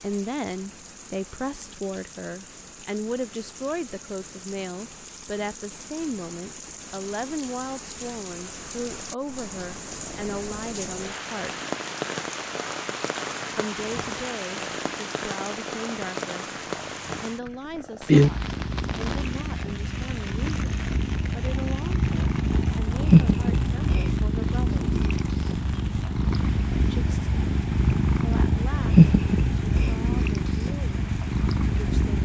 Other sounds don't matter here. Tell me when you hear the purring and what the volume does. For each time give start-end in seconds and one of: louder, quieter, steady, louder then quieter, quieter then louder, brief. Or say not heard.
9.8-32.2 louder.